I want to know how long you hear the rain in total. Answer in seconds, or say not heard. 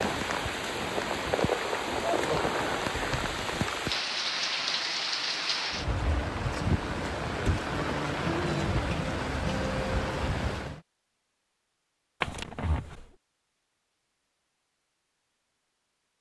11 s.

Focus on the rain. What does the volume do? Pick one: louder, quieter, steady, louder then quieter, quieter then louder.
steady.